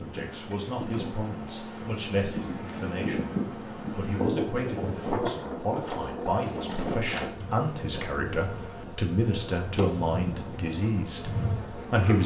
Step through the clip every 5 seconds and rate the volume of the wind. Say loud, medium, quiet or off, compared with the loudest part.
loud, loud, medium.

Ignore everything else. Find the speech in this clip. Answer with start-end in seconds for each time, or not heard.
0.0-12.2.